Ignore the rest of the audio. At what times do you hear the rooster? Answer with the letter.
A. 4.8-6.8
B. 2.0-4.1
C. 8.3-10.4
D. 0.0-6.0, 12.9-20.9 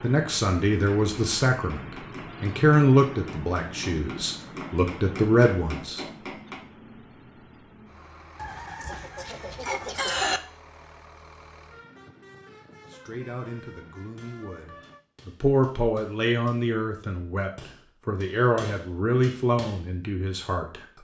C.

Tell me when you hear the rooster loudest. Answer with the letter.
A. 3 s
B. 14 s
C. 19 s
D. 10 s
D.